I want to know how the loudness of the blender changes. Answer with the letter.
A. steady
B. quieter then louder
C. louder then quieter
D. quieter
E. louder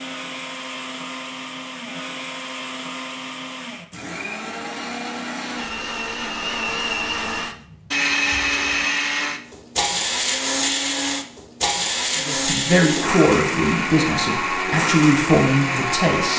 E.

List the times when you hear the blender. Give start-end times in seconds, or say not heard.
0.0-16.3.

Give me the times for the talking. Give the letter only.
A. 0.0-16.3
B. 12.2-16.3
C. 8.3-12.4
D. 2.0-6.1
B.